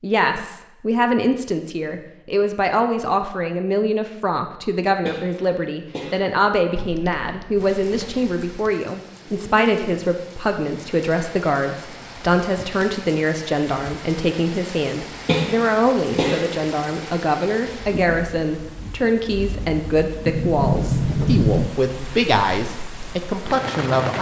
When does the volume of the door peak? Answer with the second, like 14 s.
21 s.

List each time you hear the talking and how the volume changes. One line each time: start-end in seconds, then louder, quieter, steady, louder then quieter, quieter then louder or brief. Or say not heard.
0.0-24.1 steady.